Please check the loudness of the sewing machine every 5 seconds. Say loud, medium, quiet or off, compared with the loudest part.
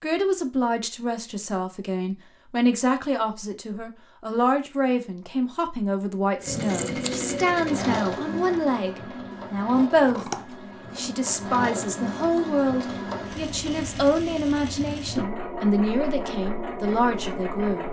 off, loud, loud, loud.